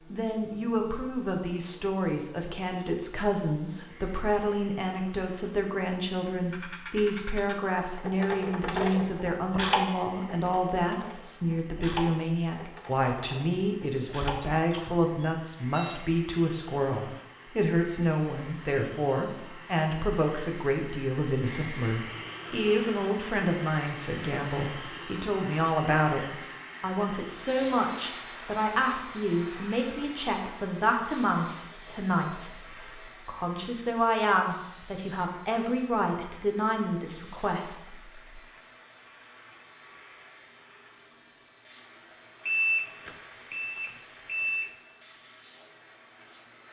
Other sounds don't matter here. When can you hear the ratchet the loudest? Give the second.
10 s.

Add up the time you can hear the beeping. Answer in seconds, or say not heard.
4 s.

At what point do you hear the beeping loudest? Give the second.
43 s.